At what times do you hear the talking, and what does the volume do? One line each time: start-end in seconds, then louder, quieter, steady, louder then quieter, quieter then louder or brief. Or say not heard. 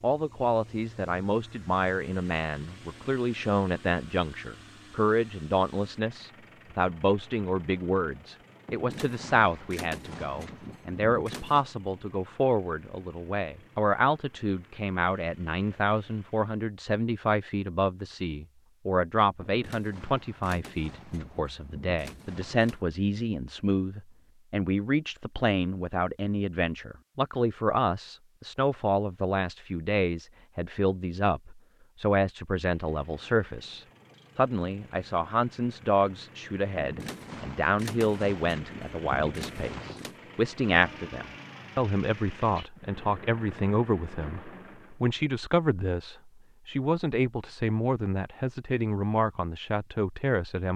0.0-50.7 steady.